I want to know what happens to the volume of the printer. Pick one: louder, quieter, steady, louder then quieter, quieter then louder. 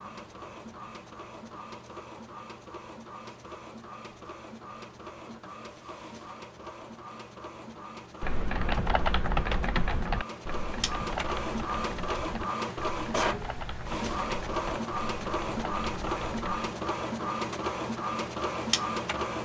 louder.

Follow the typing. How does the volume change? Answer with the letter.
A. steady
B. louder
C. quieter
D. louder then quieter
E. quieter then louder
C.